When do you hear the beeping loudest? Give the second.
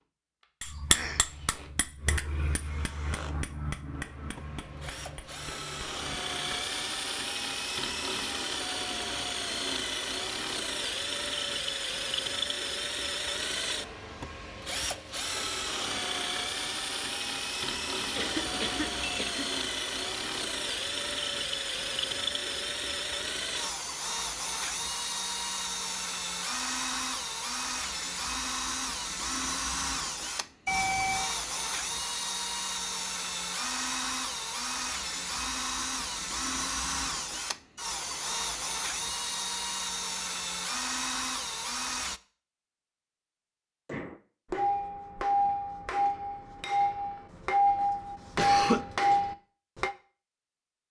31 s.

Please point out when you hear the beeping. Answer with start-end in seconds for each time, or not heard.
18.1-19.4, 30.6-31.4.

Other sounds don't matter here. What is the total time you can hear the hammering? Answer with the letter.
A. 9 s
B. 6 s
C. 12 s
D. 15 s
C.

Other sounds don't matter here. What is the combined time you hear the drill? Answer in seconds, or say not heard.
42 s.